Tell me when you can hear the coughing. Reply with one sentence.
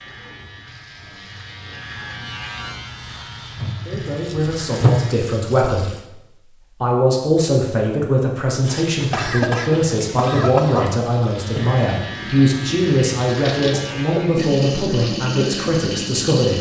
The coughing can be heard from 8.7 to 10.9 s.